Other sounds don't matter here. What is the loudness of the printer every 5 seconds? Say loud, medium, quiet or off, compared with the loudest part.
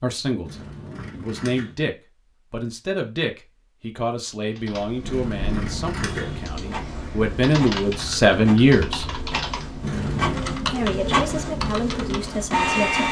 off, medium, loud.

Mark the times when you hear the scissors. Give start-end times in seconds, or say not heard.
0.5-1.8, 5.0-6.5, 9.8-10.4.